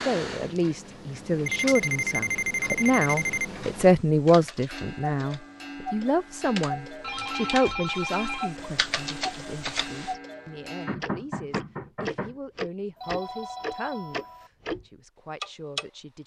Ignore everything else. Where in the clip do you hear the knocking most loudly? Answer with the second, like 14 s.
11 s.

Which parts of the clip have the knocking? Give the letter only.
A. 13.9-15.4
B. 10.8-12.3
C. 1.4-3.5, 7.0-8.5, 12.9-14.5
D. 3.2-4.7
B.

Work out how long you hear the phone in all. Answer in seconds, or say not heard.
5 s.